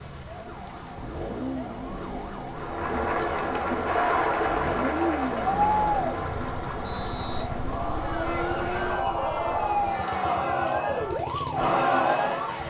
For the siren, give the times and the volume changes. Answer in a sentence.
You can hear the siren from 0.0 to 12.6 s, getting louder.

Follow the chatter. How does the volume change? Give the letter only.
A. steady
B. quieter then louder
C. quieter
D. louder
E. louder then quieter
B.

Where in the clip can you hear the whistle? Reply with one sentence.
You can hear the whistle from 6.8 to 7.5 s.